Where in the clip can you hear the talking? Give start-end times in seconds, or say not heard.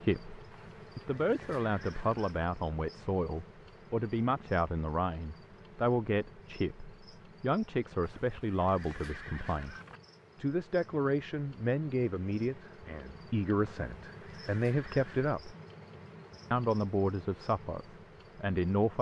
0.0-9.8, 10.4-15.6, 16.5-18.9.